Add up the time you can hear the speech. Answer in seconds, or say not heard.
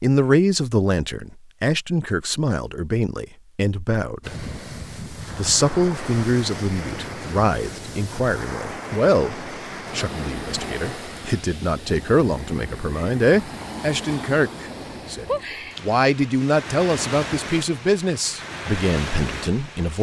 19 s.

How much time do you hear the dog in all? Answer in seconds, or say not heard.
not heard.